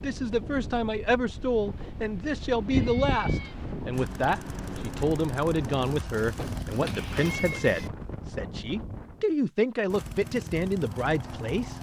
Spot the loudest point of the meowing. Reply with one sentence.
The volume of the meowing peaks at 3 seconds.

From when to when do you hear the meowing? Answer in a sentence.
You can hear the meowing from 2.7 to 3.5 s and from 6.2 to 7.9 s.